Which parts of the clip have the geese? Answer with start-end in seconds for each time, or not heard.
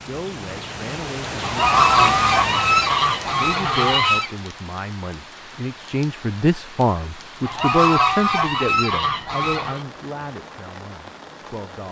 1.4-4.3, 7.5-9.8.